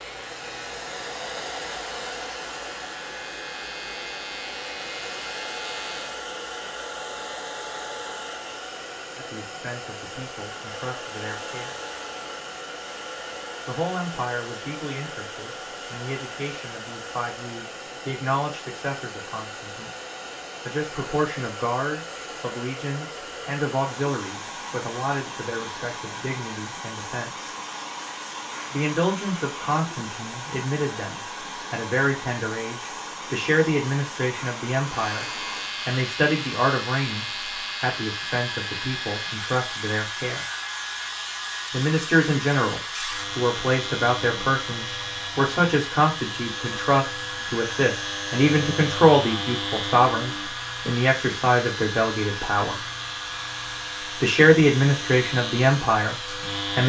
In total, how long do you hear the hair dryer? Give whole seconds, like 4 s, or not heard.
57 s.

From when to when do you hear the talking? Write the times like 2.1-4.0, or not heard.
9.2-11.8, 13.7-19.9, 20.6-27.4, 28.7-40.5, 41.7-52.8, 54.2-56.8.